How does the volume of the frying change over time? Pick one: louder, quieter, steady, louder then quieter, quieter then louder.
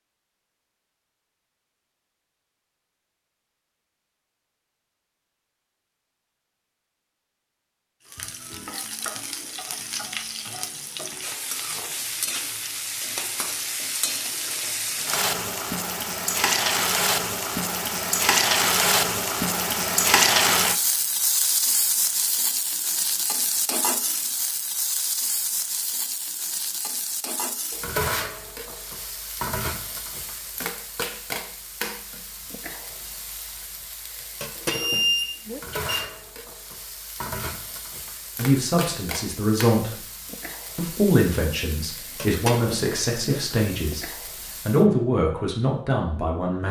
louder then quieter.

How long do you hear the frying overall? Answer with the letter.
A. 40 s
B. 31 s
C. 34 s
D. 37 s
D.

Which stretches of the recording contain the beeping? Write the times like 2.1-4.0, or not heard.
34.7-36.0.